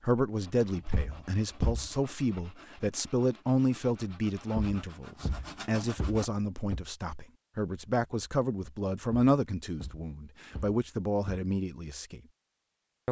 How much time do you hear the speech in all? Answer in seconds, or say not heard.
12 s.